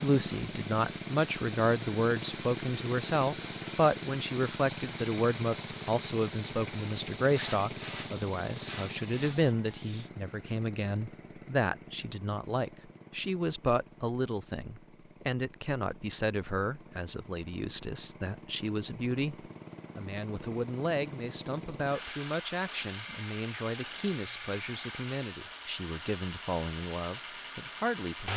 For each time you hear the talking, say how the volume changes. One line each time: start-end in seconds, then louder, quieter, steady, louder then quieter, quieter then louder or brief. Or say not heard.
0.0-28.3 quieter.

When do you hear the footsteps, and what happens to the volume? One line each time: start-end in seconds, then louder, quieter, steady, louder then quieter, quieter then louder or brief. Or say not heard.
not heard.